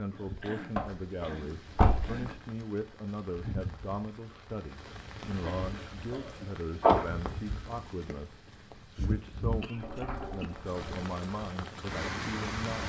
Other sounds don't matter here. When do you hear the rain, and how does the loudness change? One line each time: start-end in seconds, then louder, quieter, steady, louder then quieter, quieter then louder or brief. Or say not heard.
0.0-12.8 louder.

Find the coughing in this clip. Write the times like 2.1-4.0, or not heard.
0.4-2.5, 5.4-6.6, 8.9-10.5.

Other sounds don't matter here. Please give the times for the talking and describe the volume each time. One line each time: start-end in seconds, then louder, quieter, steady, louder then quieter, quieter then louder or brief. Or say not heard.
0.0-12.8 steady.